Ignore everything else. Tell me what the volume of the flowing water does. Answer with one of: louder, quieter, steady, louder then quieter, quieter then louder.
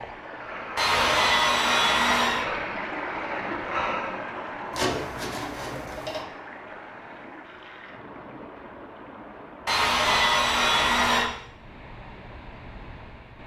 quieter.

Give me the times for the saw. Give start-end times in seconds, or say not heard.
0.8-2.5, 4.7-6.2, 9.7-11.3.